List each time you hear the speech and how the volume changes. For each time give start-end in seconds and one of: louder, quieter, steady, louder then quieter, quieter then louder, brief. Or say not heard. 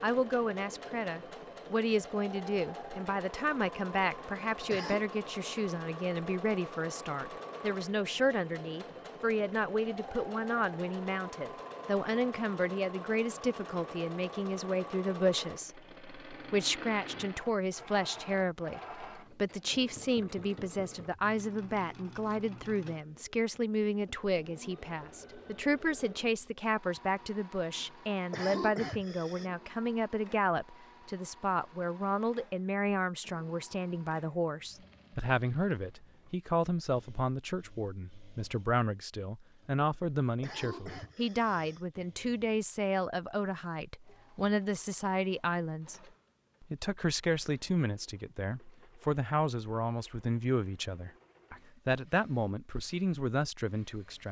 0.0-46.0 steady
46.6-54.2 steady.